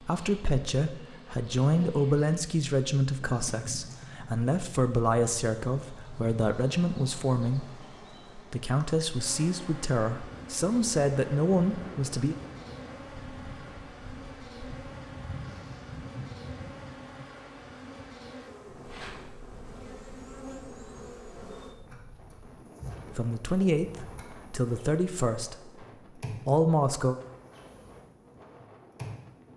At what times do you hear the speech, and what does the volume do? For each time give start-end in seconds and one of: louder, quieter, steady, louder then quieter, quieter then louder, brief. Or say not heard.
0.0-12.3 steady
23.1-25.9 brief
26.4-27.1 brief.